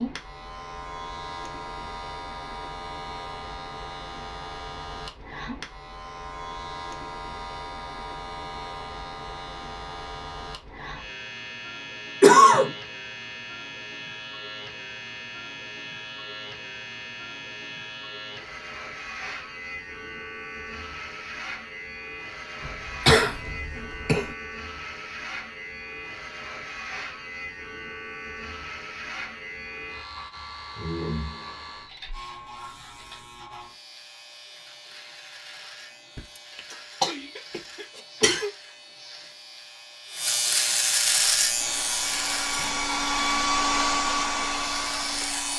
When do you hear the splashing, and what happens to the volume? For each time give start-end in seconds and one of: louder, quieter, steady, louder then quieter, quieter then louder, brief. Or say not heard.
not heard.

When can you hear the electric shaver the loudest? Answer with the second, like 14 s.
41 s.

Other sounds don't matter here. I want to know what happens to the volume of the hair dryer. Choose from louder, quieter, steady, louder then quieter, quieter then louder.
louder then quieter.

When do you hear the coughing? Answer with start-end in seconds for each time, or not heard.
12.2-12.7, 22.6-24.3, 36.1-38.5.